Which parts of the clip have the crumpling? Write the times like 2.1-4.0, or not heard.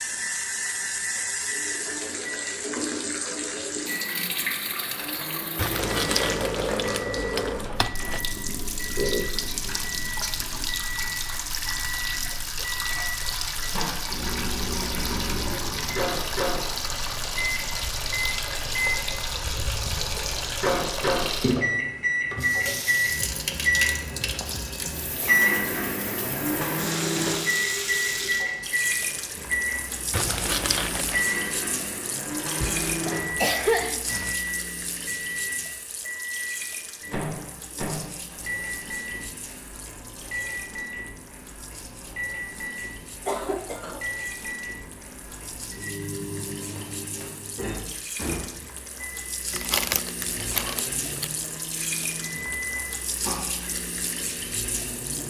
5.5-8.2, 30.1-31.2, 49.5-51.3.